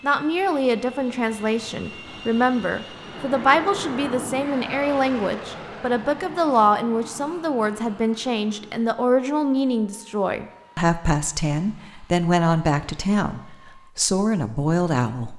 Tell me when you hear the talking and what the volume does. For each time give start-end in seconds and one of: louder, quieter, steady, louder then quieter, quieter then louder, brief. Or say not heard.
0.0-15.3 steady.